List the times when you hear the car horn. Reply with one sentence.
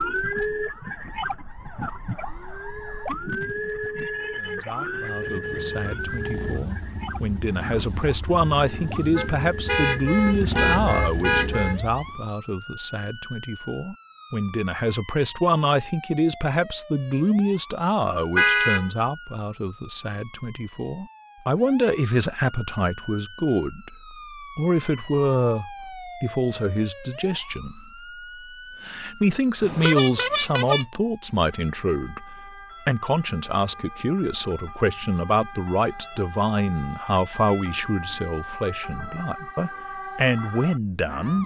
The car horn can be heard from 9.2 to 11.8 s, from 18.4 to 18.9 s and from 29.6 to 30.9 s.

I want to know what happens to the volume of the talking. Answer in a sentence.
The loudness of the talking stays about the same.